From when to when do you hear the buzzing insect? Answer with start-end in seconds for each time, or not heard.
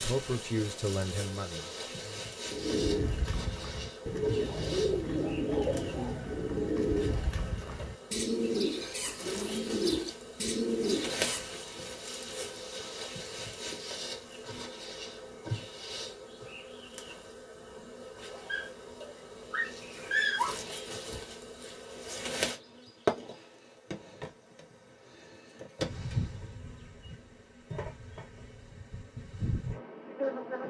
0.0-30.6.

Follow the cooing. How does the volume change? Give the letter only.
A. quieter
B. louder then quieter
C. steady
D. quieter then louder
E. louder
C.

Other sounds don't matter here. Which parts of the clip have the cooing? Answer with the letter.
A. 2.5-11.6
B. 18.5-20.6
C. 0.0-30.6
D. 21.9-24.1
A.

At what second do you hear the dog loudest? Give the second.
20 s.